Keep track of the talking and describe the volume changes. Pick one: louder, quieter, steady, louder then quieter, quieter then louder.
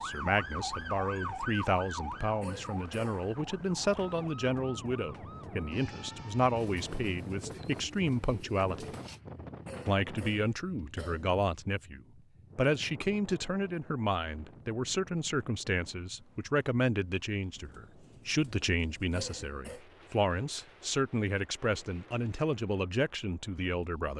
steady.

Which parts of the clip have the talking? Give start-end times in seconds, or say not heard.
0.0-8.9, 9.8-24.1.